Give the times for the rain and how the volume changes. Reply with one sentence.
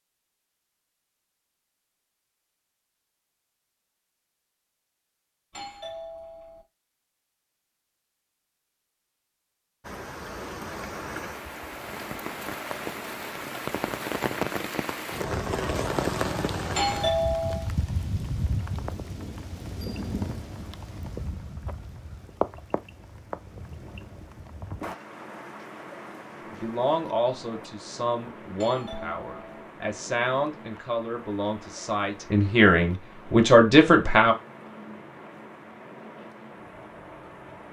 You can hear the rain from 9.8 to 37.6 s, getting quieter.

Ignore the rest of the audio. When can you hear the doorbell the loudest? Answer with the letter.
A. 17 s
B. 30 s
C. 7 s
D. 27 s
A.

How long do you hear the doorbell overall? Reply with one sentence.
The doorbell can be heard for 3 seconds in total.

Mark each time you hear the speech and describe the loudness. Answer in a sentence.
The speech can be heard from 26.5 to 34.4 s, getting louder.